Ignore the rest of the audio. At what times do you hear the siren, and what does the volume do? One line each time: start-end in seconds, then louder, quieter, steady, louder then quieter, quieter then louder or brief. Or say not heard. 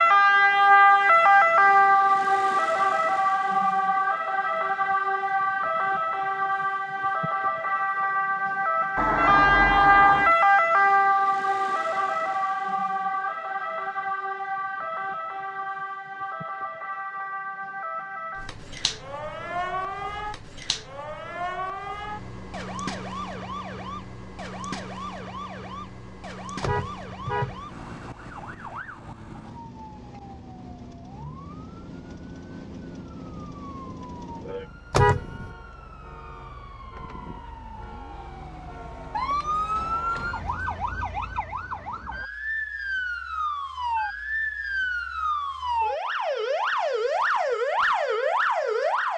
0.0-49.1 quieter then louder.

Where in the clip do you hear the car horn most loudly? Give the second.
35 s.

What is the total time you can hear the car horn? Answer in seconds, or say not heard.
3 s.